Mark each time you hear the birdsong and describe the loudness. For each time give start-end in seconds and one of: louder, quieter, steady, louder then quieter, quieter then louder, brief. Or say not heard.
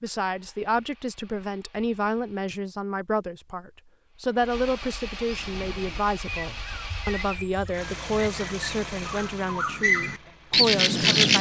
5.2-11.3 louder.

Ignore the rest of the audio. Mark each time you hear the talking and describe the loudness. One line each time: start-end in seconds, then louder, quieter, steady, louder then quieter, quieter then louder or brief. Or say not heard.
0.0-11.3 steady.